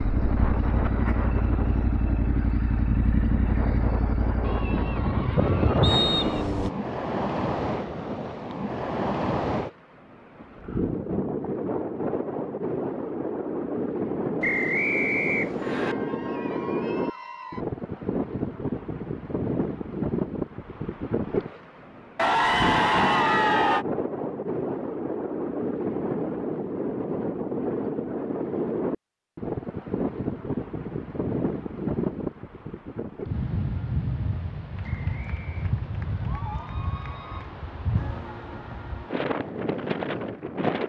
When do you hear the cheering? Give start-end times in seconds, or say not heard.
4.4-6.5, 15.6-17.6, 22.1-23.9, 34.8-37.5.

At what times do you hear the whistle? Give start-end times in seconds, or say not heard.
5.8-6.5, 14.4-15.9, 34.8-35.6.